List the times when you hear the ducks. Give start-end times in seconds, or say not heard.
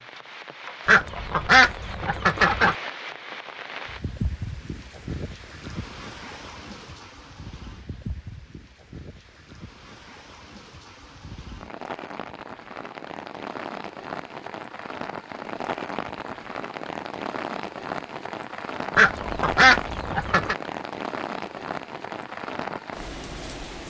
0.8-2.8, 18.9-20.6.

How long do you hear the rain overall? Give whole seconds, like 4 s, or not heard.
24 s.